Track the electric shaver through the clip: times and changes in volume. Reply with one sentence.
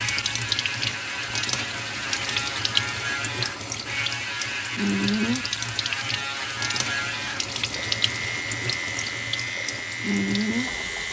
You can hear the electric shaver from 0.0 to 11.0 s, at a steady volume.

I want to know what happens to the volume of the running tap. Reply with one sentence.
The loudness of the running tap stays about the same.